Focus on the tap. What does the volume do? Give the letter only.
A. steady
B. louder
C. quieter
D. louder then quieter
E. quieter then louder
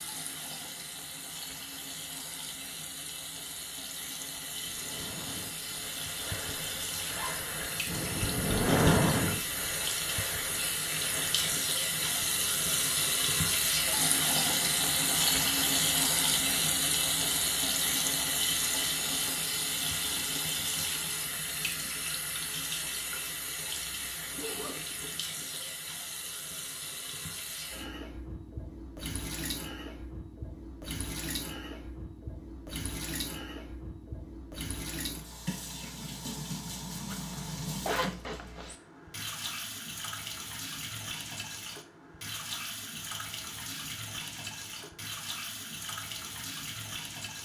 D.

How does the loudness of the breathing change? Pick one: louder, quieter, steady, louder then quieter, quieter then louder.
louder then quieter.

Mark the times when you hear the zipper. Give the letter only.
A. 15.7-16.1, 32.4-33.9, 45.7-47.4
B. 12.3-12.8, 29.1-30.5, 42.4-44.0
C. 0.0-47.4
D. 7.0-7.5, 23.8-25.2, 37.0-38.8
D.